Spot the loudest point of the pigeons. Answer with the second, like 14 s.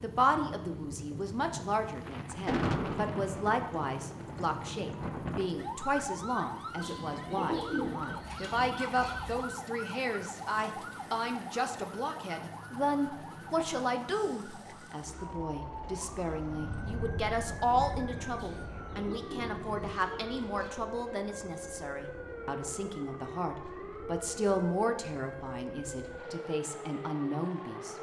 8 s.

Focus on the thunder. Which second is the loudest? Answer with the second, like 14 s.
3 s.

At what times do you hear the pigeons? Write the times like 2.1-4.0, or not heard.
6.8-9.4, 18.4-20.8.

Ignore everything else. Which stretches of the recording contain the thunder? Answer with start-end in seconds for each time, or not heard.
2.0-5.8, 15.8-19.9.